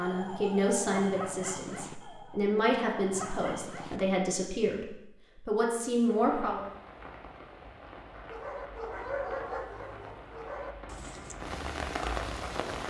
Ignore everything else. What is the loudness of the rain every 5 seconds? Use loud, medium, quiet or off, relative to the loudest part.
off, medium, loud.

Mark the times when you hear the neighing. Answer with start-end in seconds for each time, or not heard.
not heard.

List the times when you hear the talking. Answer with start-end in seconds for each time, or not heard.
0.0-6.6.